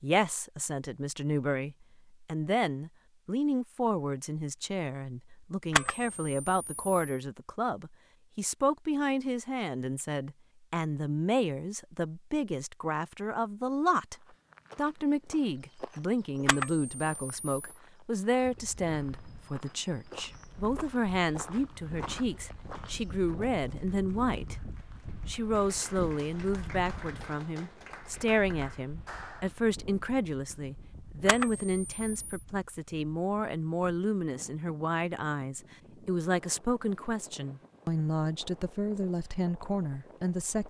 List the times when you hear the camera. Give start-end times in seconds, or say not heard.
5.7-7.0, 16.4-17.6, 31.2-32.4.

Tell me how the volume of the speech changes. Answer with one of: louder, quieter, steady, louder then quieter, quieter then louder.
steady.